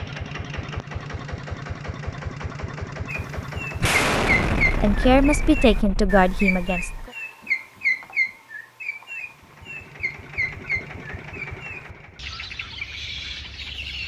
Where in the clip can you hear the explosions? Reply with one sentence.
The explosions can be heard from 3.8 to 7.1 s.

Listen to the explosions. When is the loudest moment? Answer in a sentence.
The loudest moment of the explosions is at 4 seconds.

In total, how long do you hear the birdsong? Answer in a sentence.
You can hear the birdsong for 11 seconds altogether.